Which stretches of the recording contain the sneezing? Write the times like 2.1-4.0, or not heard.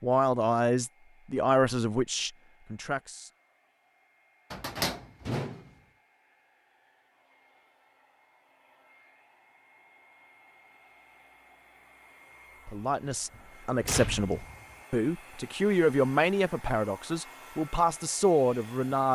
not heard.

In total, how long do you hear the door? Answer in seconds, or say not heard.
3 s.